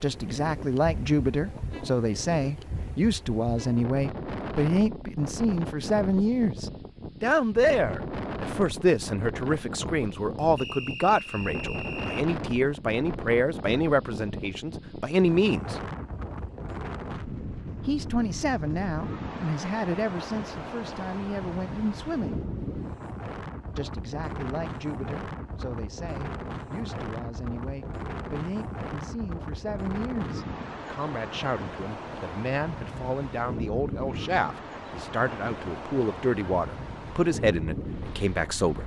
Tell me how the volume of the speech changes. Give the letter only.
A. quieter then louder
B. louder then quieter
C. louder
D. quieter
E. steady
A.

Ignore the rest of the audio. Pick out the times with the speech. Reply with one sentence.
The speech can be heard from 0.0 to 15.8 s, from 17.9 to 22.4 s and from 23.8 to 38.8 s.